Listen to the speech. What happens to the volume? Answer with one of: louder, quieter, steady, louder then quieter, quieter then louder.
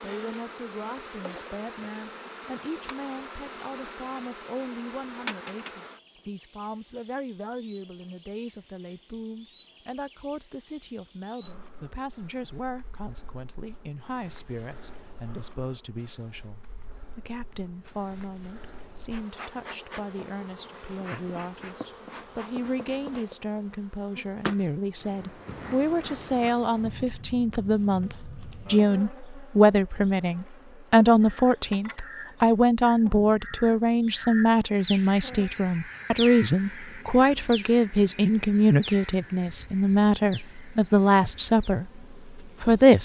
louder.